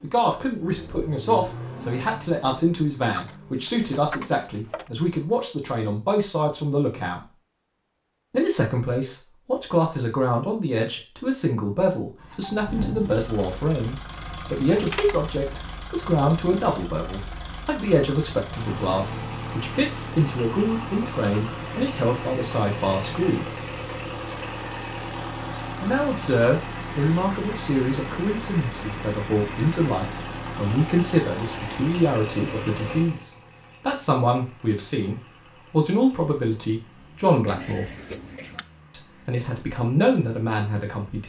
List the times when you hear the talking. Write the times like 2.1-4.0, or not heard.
0.0-7.2, 8.3-23.6, 25.8-37.9, 38.9-41.2.